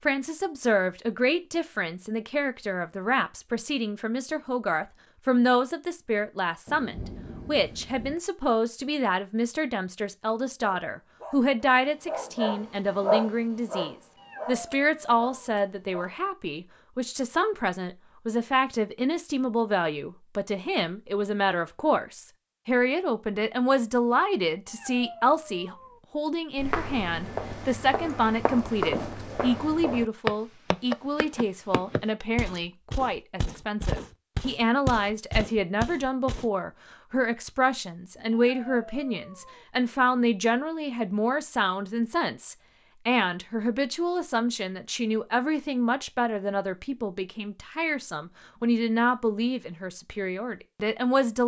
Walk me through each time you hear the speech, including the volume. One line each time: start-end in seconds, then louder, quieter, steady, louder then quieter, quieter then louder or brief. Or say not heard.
0.1-51.4 steady.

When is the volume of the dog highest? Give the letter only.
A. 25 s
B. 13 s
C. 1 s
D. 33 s
B.